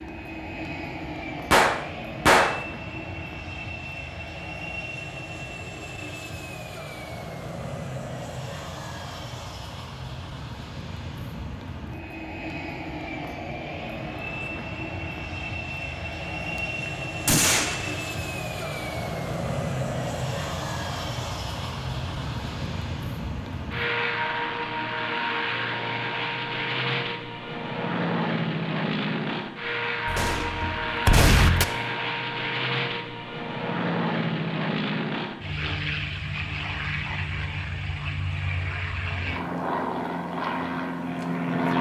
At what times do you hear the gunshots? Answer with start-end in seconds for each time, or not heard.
1.5-2.6, 16.4-18.1, 30.1-31.6.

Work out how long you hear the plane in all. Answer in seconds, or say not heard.
42 s.